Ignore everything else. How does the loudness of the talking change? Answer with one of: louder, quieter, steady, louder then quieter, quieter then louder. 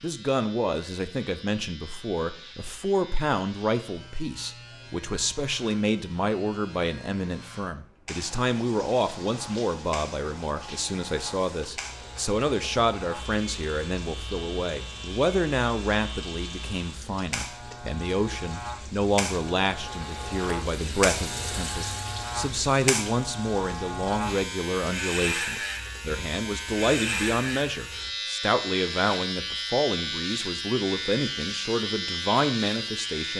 steady.